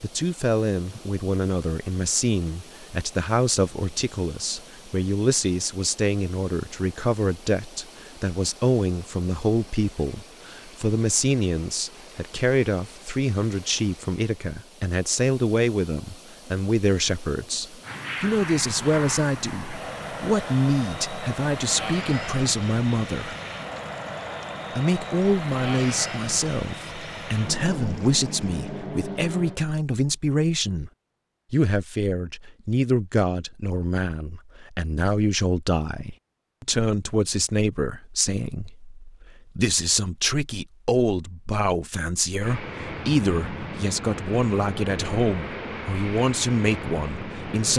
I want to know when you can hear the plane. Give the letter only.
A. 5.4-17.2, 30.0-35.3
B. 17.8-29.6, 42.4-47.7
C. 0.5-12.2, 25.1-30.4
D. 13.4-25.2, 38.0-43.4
B.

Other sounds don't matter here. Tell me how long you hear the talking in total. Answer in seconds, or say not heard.
46 s.